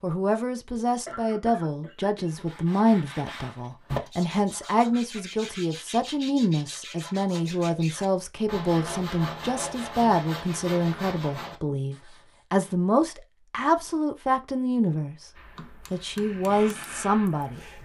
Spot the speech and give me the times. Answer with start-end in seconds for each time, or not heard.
0.0-15.3, 15.9-17.6.